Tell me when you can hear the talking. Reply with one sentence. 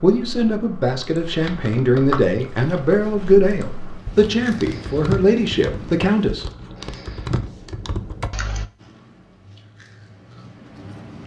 You can hear the talking from 0.0 to 6.5 s.